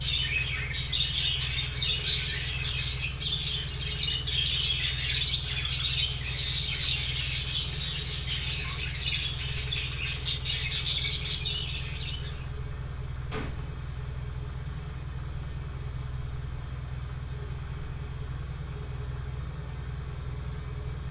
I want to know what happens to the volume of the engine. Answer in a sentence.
The volume of the engine stays about the same.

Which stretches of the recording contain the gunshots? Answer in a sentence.
You can hear the gunshots from 13.3 to 13.8 s.